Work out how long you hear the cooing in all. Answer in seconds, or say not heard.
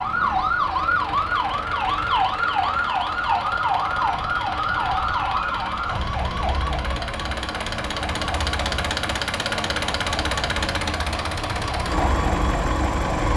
not heard.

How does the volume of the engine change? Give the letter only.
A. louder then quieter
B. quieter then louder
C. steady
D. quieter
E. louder
E.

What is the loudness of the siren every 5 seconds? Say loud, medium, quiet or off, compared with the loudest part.
loud, medium, medium.